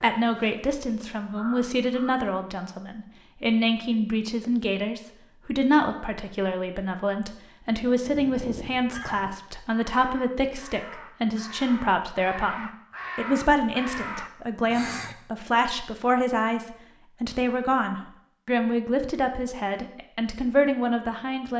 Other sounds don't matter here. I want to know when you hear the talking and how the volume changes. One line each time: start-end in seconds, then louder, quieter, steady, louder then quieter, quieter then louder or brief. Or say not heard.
0.0-21.5 steady.